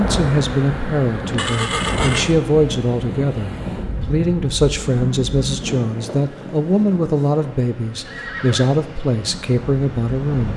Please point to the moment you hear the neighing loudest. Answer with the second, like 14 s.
2 s.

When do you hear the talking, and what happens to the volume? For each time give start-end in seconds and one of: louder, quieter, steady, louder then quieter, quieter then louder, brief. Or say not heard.
0.0-10.5 steady.